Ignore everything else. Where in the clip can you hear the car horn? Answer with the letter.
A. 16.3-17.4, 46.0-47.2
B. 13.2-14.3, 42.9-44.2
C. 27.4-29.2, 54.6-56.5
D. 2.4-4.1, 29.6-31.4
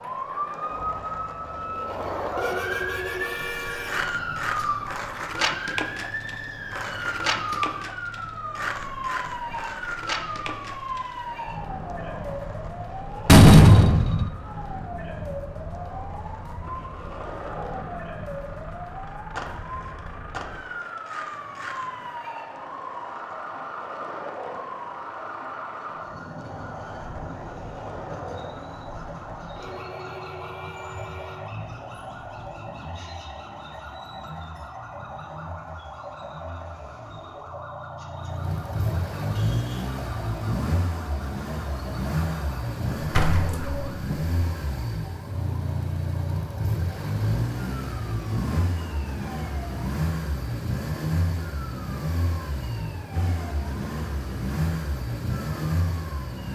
D.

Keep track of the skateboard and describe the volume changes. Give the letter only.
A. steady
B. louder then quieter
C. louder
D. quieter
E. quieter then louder
D.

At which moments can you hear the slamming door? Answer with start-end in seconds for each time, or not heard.
13.2-14.3, 42.9-44.2.